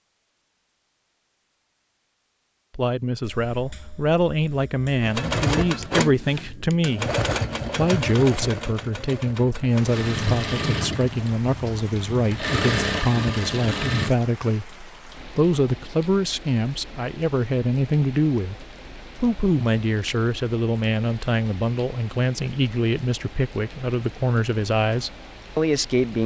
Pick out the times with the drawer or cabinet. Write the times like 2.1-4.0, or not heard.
not heard.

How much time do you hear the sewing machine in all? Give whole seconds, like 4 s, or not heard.
9 s.